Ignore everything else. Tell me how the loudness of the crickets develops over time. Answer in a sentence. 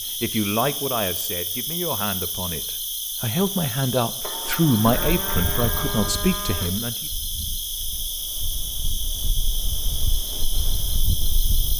The volume of the crickets stays about the same.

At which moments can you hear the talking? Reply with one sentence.
The talking can be heard from 0.2 to 7.0 s.